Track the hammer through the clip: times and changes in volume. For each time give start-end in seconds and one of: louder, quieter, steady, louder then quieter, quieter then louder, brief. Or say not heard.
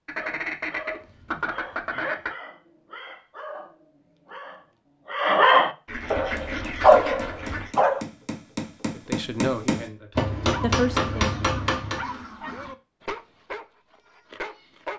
6.2-12.1 louder.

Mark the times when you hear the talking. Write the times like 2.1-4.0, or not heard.
8.9-11.3.